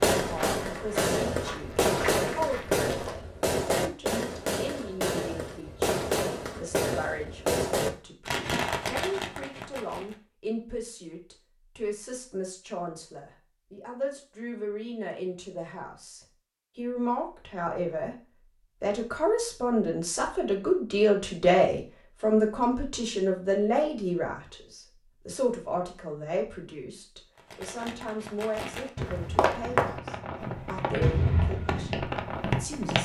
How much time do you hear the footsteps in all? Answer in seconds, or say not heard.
7 s.